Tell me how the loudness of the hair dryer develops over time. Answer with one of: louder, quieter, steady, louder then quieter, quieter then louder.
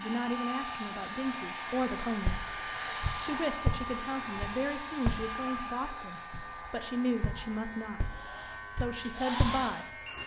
quieter then louder.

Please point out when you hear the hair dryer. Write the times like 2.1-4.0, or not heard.
0.0-9.9.